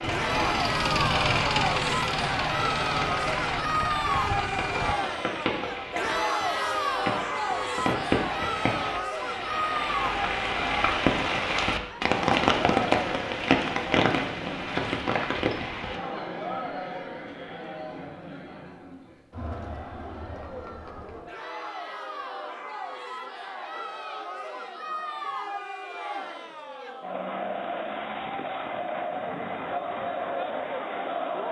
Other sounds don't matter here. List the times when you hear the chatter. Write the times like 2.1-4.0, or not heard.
0.1-31.4.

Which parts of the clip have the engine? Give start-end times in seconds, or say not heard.
0.0-5.0.